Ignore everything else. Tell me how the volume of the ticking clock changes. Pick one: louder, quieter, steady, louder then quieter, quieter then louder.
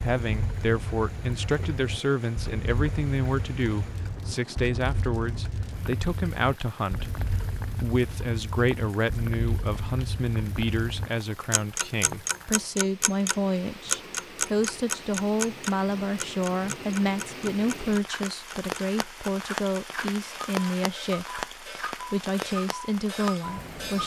louder then quieter.